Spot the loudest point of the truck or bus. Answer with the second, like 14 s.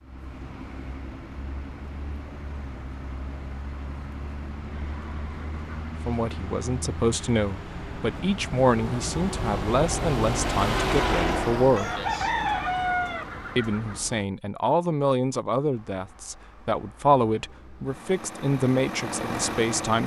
11 s.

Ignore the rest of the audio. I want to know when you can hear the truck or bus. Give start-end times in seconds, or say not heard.
0.0-14.2, 15.7-20.0.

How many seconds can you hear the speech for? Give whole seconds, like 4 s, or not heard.
12 s.